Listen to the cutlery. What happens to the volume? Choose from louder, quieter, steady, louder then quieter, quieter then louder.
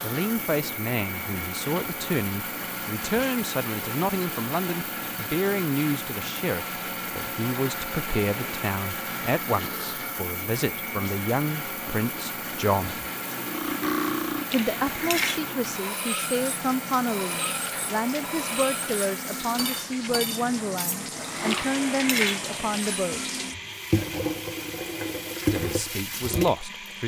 quieter.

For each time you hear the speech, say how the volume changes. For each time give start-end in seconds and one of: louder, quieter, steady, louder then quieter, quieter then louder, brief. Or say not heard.
0.0-13.0 steady
14.5-23.4 steady
25.5-27.0 brief.